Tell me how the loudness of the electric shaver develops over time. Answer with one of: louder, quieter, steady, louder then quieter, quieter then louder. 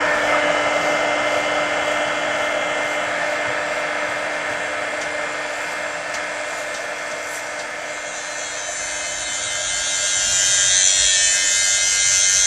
louder.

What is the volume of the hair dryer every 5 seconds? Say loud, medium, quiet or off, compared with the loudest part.
loud, medium, quiet.